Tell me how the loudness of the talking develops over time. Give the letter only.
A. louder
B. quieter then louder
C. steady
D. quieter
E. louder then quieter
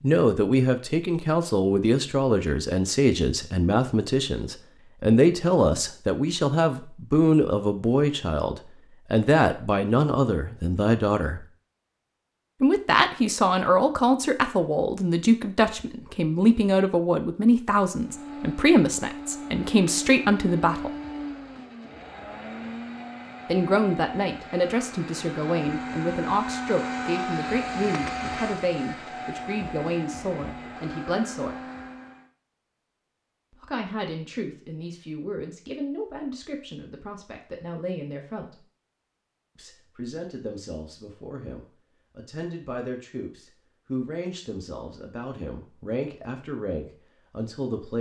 D.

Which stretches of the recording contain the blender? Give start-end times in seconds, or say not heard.
17.9-32.3.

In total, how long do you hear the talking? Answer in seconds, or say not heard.
41 s.